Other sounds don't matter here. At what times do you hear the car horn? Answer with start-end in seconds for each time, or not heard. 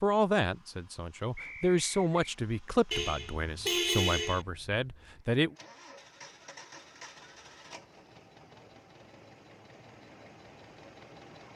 2.9-4.5.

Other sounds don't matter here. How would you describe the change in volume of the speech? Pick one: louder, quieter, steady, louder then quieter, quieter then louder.
louder then quieter.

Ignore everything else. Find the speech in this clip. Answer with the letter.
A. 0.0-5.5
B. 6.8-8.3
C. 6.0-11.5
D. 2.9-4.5
A.